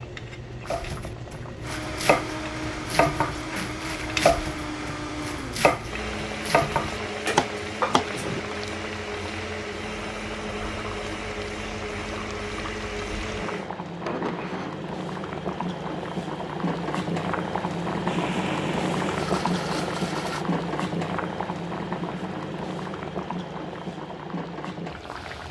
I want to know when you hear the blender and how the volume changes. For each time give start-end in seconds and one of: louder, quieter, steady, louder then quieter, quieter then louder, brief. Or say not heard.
1.6-14.8 steady
18.1-20.4 brief.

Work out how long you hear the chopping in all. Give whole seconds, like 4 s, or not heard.
8 s.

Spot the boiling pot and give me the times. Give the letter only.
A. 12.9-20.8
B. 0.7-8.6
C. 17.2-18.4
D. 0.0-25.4
D.